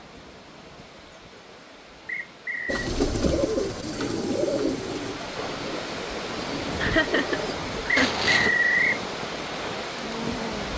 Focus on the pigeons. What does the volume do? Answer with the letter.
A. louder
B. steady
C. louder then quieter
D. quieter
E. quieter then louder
E.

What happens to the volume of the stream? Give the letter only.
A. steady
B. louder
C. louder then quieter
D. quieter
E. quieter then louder
B.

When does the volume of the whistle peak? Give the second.
9 s.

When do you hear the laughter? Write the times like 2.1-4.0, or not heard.
6.8-8.2.